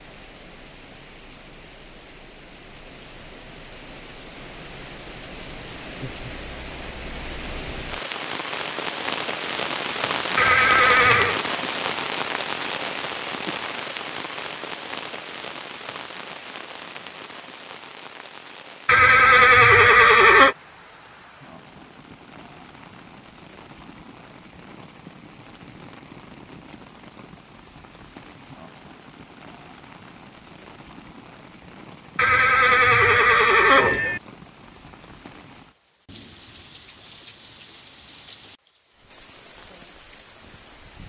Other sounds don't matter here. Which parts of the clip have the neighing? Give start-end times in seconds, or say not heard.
10.3-11.4, 18.9-20.6, 32.1-34.2.